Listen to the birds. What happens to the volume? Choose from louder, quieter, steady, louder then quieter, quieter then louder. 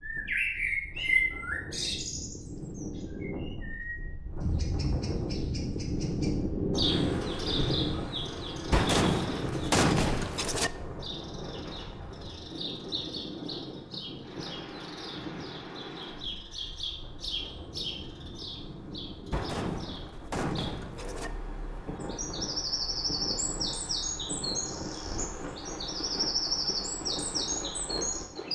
quieter then louder.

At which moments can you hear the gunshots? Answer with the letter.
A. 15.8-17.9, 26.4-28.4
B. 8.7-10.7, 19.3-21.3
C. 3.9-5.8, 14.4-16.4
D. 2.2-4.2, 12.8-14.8
B.